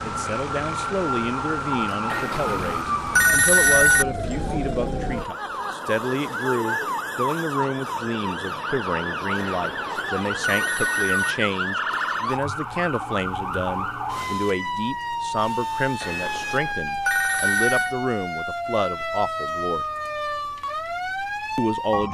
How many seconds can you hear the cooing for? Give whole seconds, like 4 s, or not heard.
not heard.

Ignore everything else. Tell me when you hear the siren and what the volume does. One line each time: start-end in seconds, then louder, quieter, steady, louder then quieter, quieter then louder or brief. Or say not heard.
0.0-22.0 steady.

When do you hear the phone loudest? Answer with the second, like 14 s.
4 s.